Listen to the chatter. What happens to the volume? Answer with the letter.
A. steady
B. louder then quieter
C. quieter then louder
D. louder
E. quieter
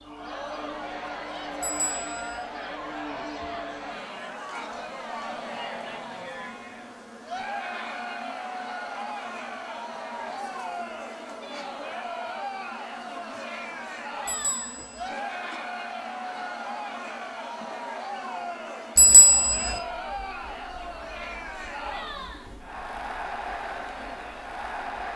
A.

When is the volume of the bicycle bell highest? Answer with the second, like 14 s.
19 s.